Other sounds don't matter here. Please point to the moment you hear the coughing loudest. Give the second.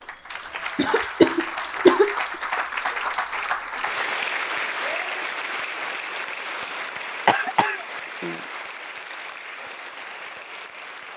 2 s.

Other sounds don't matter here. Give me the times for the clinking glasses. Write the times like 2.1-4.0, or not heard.
not heard.